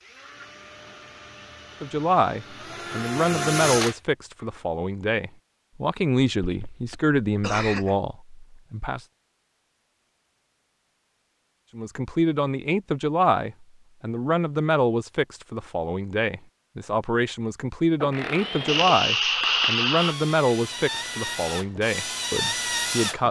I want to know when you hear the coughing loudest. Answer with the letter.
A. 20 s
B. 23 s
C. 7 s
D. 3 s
A.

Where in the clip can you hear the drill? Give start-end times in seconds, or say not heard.
0.0-4.7, 18.0-23.2.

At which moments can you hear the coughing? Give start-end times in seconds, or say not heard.
6.4-8.0, 18.6-20.1.